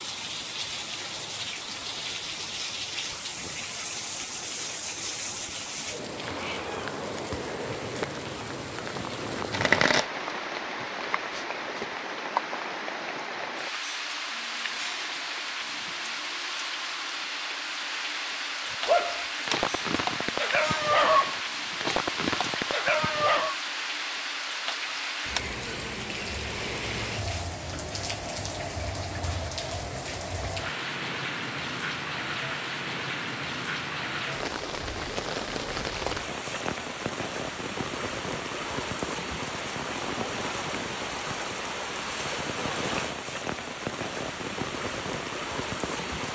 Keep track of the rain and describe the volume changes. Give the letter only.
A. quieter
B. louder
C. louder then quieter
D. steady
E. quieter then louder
D.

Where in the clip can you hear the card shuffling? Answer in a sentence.
You can hear the card shuffling from 9.3 to 11.8 s.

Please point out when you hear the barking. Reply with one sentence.
The barking can be heard from 18.9 to 23.6 s.